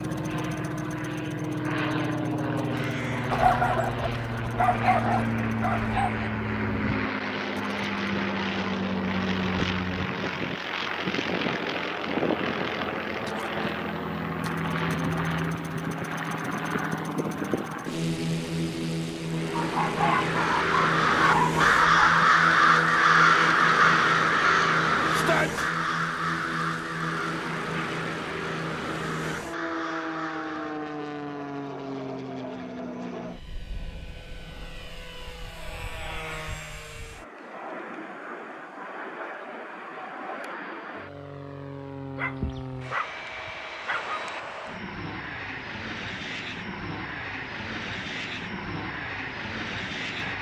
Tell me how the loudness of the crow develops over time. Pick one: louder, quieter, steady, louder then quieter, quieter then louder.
quieter.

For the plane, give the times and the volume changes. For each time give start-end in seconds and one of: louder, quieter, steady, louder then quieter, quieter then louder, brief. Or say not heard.
0.0-50.3 quieter.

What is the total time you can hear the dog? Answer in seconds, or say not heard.
8 s.